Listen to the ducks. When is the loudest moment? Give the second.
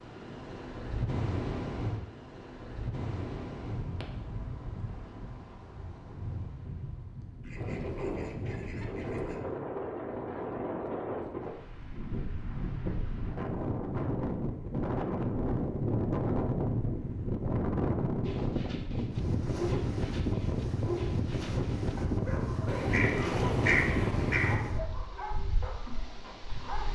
24 s.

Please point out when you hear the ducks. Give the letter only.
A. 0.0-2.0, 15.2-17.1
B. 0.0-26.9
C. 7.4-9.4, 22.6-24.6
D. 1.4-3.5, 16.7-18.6
C.